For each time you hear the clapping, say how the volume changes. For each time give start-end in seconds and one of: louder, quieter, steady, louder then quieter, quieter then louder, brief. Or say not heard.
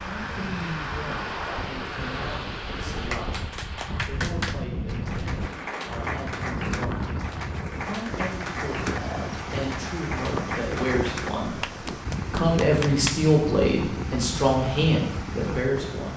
3.1-13.2 steady.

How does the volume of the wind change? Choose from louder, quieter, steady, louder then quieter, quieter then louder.
steady.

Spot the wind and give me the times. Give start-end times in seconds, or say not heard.
0.0-16.1.